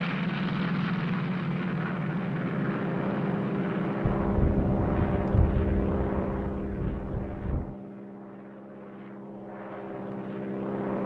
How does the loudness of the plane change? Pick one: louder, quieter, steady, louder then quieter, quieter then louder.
quieter.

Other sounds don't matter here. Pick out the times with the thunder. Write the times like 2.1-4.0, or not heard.
4.2-7.8.